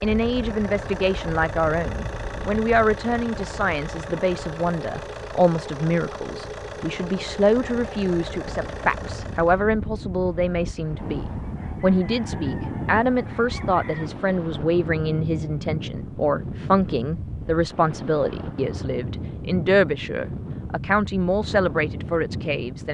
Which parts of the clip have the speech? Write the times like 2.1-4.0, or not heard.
0.0-22.8.